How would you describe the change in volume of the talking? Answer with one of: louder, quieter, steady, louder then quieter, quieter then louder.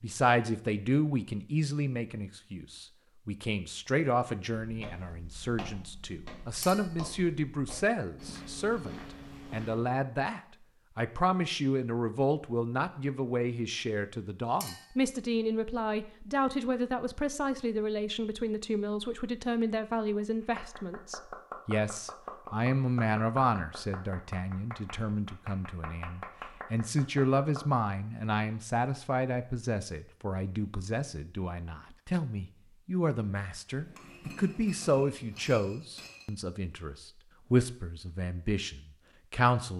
steady.